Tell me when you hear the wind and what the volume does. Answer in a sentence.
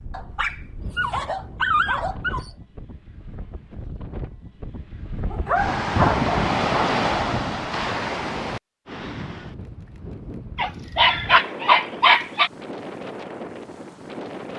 You can hear the wind from 0.0 to 14.5 s, getting louder then quieter.